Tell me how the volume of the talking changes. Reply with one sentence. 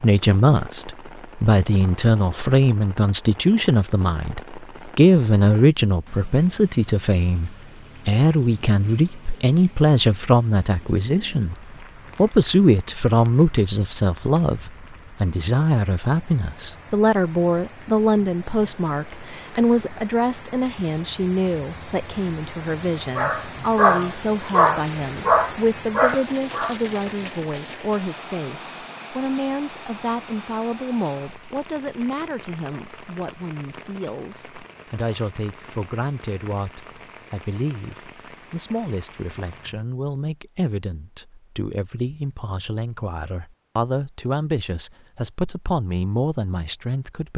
The loudness of the talking goes down.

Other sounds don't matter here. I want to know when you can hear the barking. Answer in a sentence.
You can hear the barking from 23.1 to 26.8 s.